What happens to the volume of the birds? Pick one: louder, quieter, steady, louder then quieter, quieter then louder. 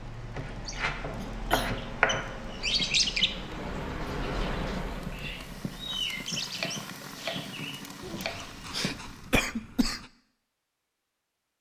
louder then quieter.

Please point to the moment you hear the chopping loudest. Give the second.
2 s.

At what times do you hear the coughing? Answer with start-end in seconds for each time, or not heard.
1.2-1.8, 8.0-10.1.